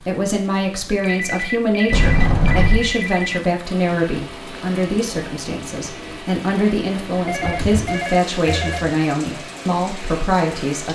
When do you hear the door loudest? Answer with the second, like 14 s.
2 s.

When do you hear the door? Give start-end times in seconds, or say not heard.
1.9-3.0, 7.2-8.7.